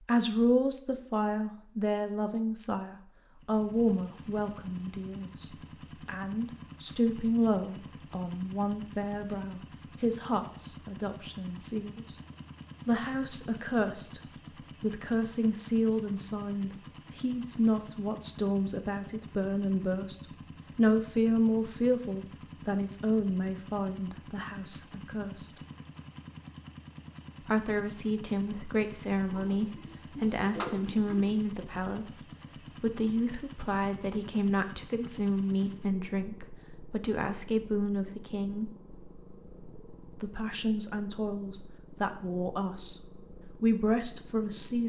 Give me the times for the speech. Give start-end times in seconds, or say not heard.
0.0-12.2, 12.8-14.2, 14.8-25.5, 27.4-38.7, 40.2-44.8.